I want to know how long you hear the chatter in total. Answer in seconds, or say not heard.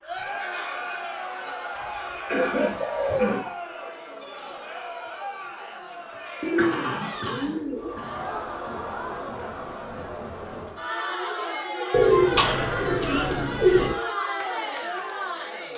16 s.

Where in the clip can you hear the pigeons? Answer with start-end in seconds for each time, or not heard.
1.8-3.3, 6.4-8.0, 11.9-13.9.